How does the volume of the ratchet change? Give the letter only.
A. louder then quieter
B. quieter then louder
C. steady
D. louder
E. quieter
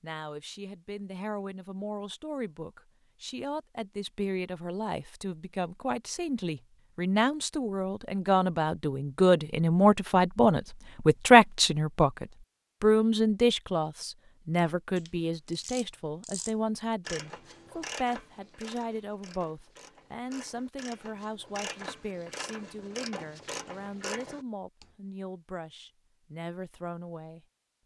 B.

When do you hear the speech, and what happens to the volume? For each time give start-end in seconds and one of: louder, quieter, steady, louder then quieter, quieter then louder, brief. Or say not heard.
0.0-27.8 louder then quieter.